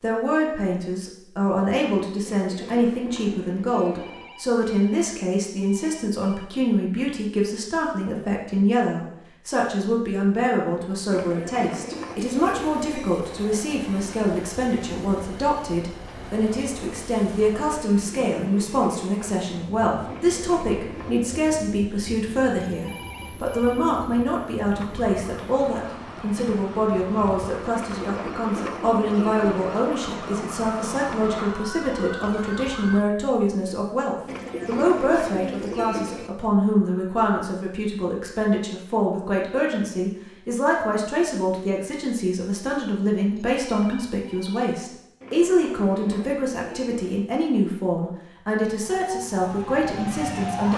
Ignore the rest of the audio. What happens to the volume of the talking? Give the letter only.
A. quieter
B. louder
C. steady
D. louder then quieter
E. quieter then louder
C.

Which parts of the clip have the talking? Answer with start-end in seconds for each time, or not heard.
0.0-50.7.